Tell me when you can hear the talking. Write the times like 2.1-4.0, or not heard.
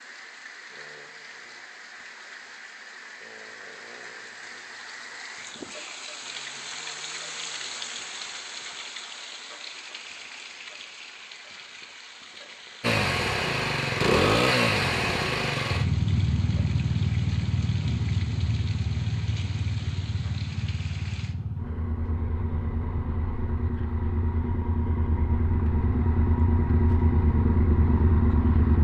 not heard.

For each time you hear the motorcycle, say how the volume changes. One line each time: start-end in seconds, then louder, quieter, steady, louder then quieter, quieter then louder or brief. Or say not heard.
12.8-28.8 quieter then louder.